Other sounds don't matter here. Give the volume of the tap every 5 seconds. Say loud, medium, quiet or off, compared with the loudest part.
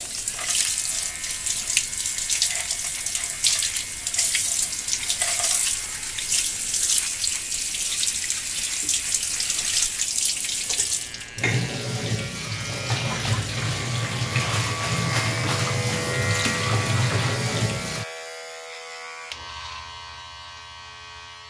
loud, loud, loud, loud, off.